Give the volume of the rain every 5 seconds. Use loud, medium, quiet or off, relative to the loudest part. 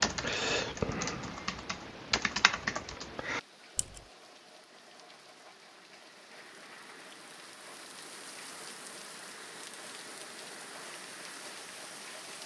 medium, loud, loud.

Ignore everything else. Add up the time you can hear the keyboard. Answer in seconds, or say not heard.
4 s.